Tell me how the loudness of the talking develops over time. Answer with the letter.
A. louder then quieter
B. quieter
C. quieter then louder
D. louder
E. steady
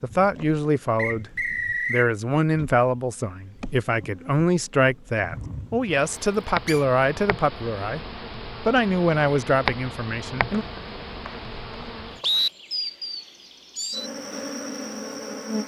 E.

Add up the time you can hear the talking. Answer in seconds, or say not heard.
11 s.